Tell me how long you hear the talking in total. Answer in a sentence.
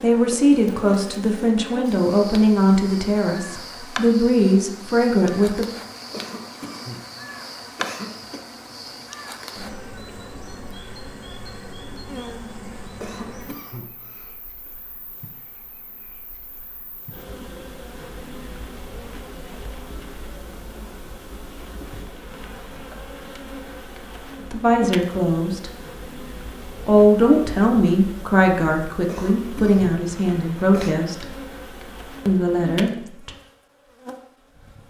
The talking can be heard for 12 seconds in total.